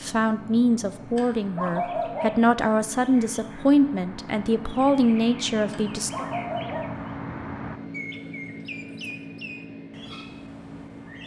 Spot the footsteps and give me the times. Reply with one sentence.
The footsteps can't be heard in this clip.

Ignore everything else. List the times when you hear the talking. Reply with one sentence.
You can hear the talking from 0.0 to 6.2 s.